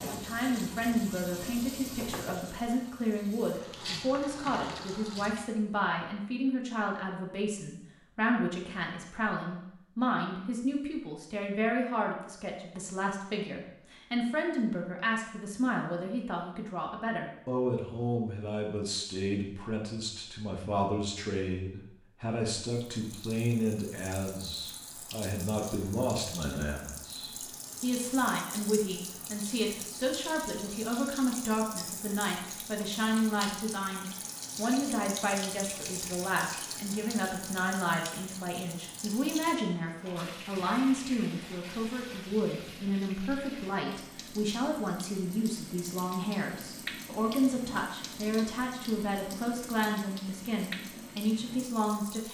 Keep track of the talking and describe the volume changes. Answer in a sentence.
The loudness of the talking stays about the same.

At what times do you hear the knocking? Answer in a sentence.
The knocking can be heard from 1.9 to 2.4 s.